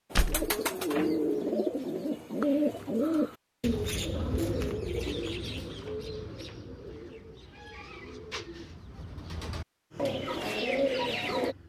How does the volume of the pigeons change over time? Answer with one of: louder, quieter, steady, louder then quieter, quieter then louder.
quieter then louder.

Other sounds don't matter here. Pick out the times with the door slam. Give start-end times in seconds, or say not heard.
0.1-0.6.